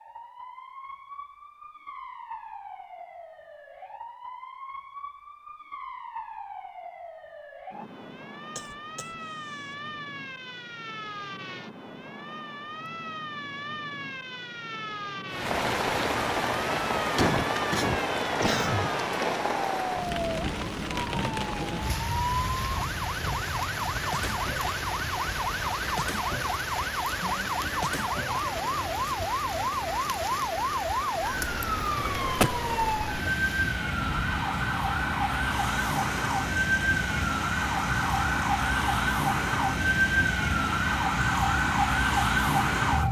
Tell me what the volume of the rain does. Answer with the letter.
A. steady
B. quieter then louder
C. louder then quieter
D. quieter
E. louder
D.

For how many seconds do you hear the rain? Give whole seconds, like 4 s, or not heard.
28 s.